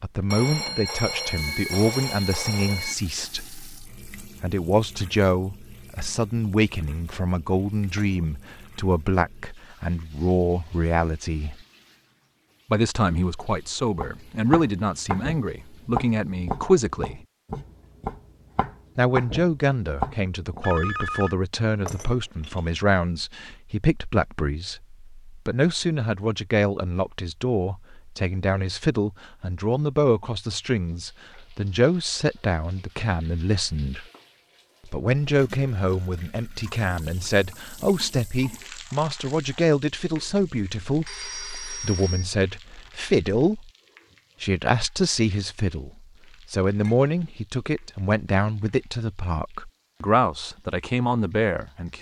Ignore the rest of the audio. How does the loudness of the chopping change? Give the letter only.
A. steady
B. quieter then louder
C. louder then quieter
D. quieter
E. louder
B.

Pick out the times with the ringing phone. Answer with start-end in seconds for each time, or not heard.
0.3-3.0, 20.6-21.4, 40.8-42.2.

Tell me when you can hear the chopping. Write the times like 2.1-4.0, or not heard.
13.9-20.6.